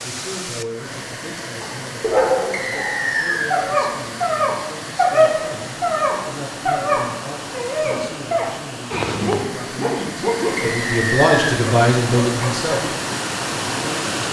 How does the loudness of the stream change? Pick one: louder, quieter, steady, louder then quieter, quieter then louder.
louder.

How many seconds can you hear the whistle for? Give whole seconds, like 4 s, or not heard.
2 s.